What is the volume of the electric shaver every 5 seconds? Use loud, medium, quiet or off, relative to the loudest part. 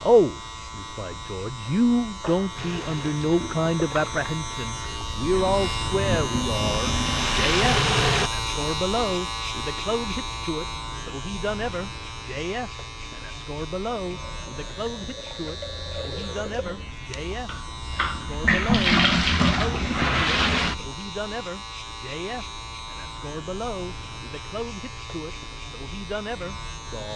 medium, loud, medium, medium, medium, medium.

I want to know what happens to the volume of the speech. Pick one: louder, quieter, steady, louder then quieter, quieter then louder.
quieter.